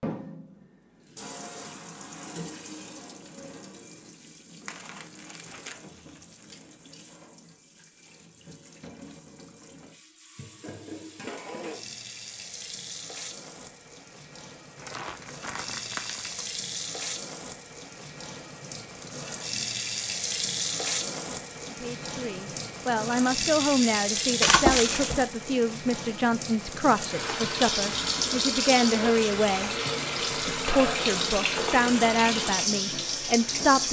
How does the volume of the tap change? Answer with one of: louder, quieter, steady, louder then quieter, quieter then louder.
louder.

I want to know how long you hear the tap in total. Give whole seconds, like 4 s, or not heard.
34 s.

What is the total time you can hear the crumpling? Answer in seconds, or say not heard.
5 s.